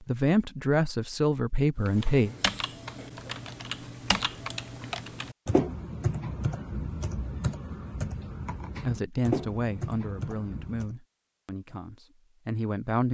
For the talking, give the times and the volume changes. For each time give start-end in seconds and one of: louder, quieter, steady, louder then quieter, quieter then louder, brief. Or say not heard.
0.0-2.4 brief
8.8-13.0 quieter then louder.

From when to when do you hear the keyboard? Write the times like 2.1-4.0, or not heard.
1.9-10.9.